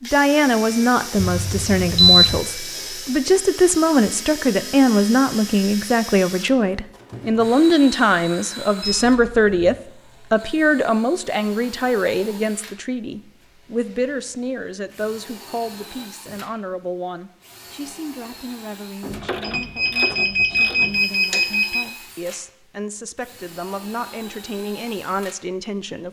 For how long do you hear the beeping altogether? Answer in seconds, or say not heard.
5 s.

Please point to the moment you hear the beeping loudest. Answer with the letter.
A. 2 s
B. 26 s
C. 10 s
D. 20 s
A.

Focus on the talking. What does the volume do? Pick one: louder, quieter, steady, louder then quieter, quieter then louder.
quieter.